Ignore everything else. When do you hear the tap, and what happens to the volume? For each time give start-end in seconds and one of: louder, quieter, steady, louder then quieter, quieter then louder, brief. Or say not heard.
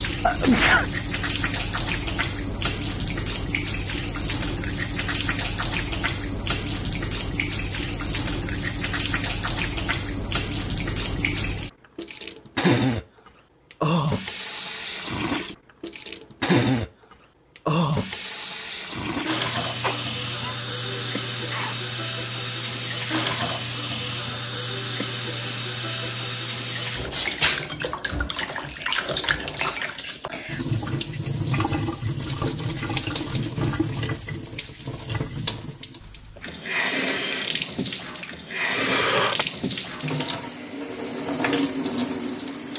0.0-42.7 steady.